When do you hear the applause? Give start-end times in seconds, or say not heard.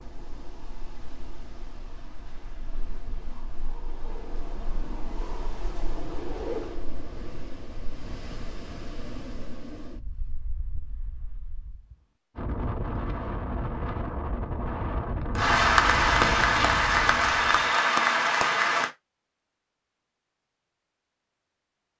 15.3-18.9.